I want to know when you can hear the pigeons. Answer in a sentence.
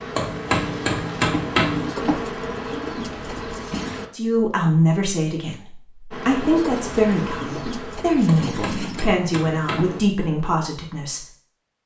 The pigeons can be heard from 1.8 to 4.1 s and from 6.4 to 9.2 s.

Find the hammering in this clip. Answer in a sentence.
The hammering can be heard from 0.1 to 1.9 s and from 8.2 to 10.0 s.